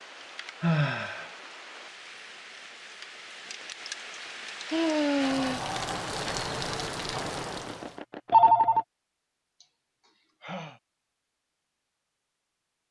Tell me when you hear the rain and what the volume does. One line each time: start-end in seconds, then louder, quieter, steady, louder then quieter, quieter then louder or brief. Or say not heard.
0.0-8.0 louder.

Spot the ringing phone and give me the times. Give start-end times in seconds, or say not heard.
7.2-8.8.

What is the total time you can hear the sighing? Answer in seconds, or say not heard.
3 s.